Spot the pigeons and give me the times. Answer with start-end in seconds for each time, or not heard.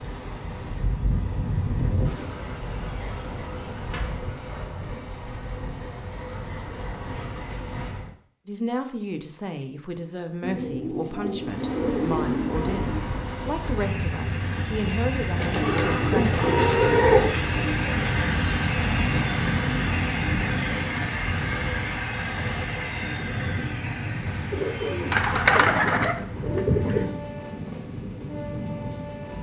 3.1-5.5, 10.4-13.1, 15.3-17.6, 24.5-27.1.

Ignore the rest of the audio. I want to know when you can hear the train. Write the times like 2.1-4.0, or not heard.
0.0-8.2, 11.4-29.3.